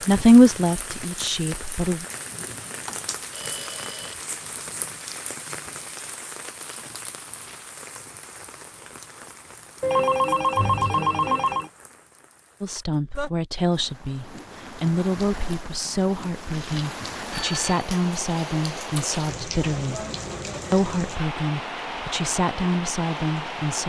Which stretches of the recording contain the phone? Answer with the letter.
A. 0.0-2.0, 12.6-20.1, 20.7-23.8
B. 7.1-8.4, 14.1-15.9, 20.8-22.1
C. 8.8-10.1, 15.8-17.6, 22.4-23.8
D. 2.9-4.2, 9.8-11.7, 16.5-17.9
D.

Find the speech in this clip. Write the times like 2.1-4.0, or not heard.
0.0-2.0, 12.6-20.1, 20.7-23.8.